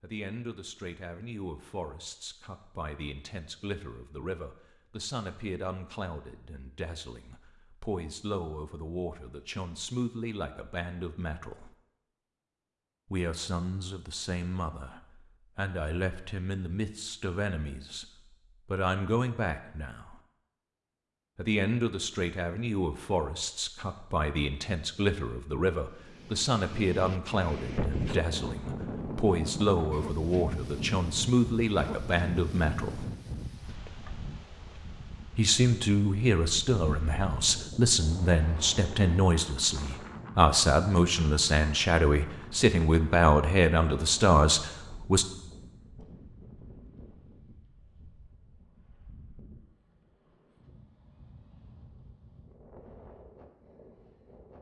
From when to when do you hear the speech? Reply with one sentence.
You can hear the speech from 0.0 to 11.8 s, from 13.1 to 18.1 s, from 18.6 to 20.1 s, from 21.4 to 33.1 s and from 35.4 to 45.2 s.